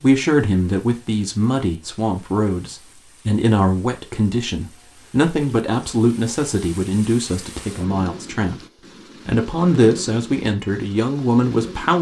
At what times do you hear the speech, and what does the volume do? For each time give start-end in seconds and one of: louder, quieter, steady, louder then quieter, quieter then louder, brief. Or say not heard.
0.0-8.7 steady
9.2-11.9 brief.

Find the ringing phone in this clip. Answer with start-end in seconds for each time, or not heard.
not heard.